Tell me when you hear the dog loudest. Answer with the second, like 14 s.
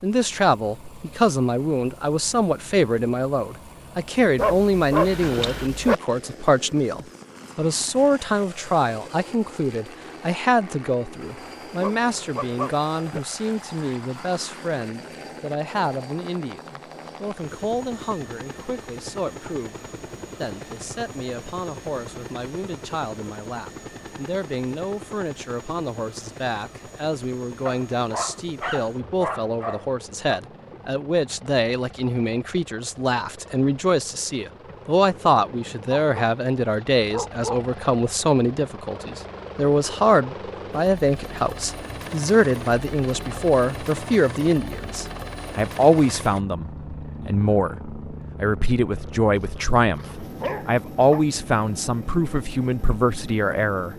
5 s.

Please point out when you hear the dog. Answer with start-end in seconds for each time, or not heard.
4.3-6.0, 11.8-13.2, 27.6-30.4, 35.9-37.6, 49.3-51.2.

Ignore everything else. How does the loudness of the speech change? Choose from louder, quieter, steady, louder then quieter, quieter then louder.
quieter then louder.